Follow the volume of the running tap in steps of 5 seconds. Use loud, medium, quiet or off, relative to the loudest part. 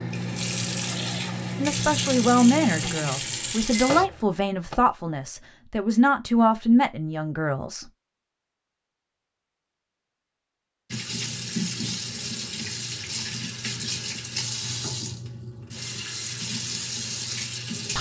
loud, off, loud, loud.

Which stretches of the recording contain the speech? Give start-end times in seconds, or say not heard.
1.6-7.8.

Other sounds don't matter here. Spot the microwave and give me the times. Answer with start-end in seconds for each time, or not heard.
0.0-4.8.